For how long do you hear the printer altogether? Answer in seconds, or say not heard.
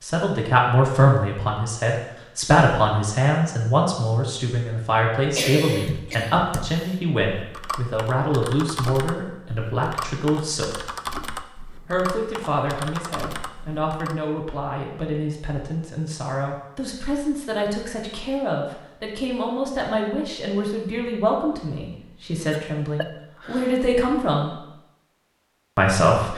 not heard.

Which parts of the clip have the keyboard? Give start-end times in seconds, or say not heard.
5.8-14.2.